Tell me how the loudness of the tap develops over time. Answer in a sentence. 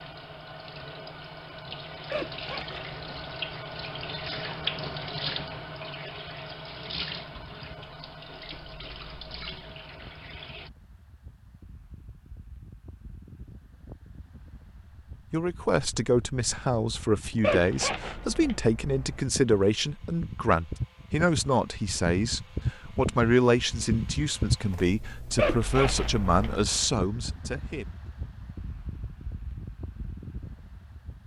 The volume of the tap goes up, then down.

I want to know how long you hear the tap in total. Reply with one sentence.
The tap can be heard for 11 seconds in total.